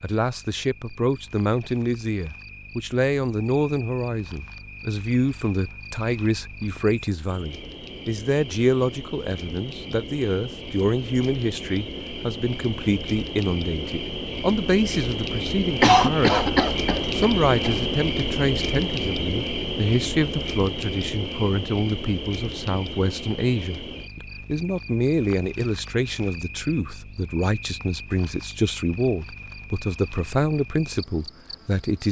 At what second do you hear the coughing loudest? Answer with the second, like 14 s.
16 s.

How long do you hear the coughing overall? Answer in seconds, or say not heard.
2 s.